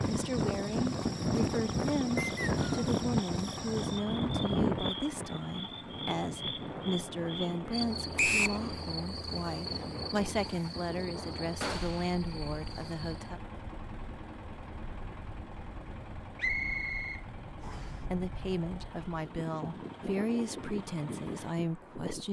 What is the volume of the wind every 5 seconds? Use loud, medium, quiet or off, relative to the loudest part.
loud, medium, quiet, quiet, medium.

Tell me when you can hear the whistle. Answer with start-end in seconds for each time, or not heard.
2.1-2.9, 8.2-8.6, 16.4-17.9.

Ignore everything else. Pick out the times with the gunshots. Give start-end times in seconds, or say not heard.
11.6-12.2.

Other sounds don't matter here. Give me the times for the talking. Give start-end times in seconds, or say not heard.
0.1-13.4, 18.1-22.2.